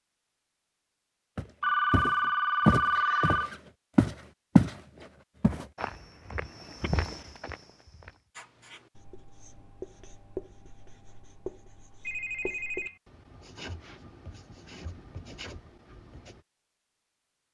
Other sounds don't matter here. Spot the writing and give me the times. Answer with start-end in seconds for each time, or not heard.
8.3-16.4.